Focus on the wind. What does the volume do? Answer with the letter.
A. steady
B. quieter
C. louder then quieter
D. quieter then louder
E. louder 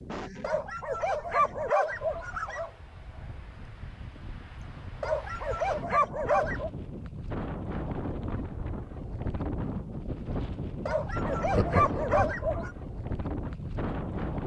E.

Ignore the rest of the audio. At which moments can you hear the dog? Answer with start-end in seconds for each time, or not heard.
0.4-2.7, 5.0-6.7, 10.8-12.7.